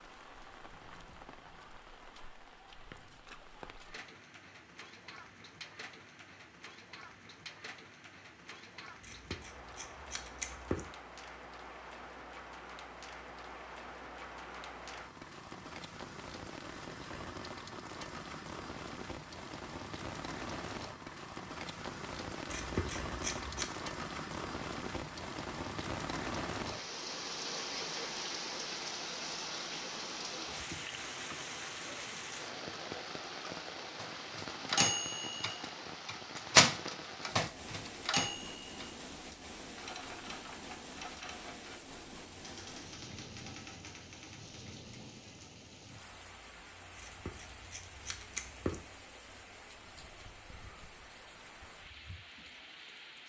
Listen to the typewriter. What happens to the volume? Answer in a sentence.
The loudness of the typewriter goes down.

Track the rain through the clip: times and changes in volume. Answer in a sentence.
You can hear the rain from 0.0 to 53.2 s, getting louder then quieter.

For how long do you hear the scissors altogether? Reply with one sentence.
You can hear the scissors for 5 seconds altogether.